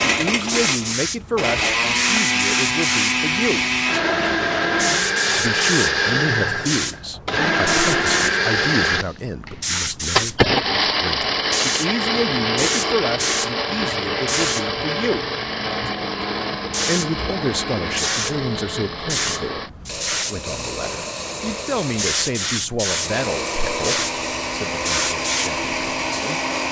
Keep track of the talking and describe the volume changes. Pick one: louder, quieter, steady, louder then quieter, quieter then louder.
steady.